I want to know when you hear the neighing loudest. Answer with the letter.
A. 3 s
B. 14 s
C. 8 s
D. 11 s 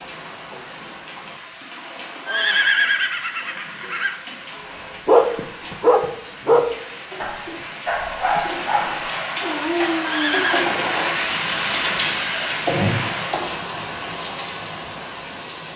A.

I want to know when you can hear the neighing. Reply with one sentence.
You can hear the neighing from 2.2 to 4.2 s and from 10.0 to 10.7 s.